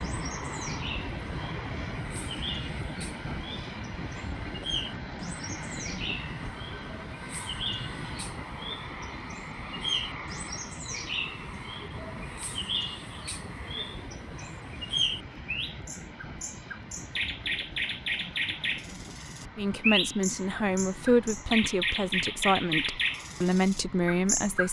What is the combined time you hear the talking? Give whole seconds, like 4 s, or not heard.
5 s.